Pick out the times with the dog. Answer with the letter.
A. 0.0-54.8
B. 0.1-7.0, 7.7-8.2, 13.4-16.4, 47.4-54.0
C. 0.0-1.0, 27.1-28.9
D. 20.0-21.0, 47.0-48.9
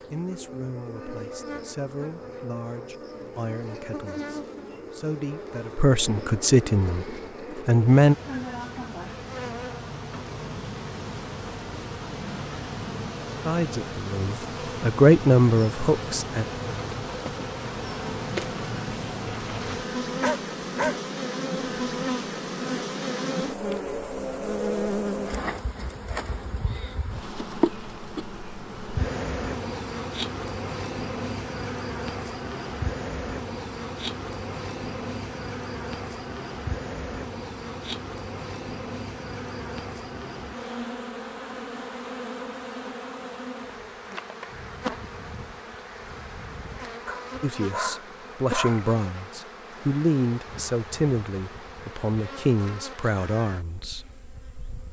D.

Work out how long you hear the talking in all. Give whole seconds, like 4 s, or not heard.
17 s.